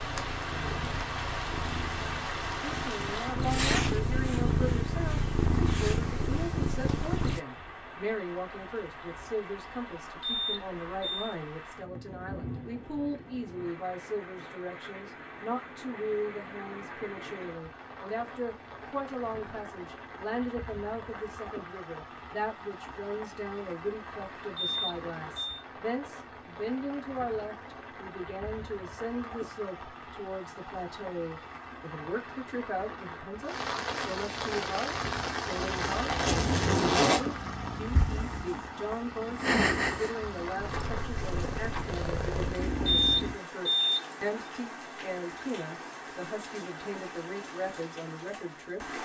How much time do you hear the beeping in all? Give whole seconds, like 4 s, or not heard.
3 s.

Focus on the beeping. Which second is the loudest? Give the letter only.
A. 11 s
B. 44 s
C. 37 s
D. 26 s
B.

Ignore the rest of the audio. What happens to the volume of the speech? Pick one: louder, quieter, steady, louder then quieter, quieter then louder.
steady.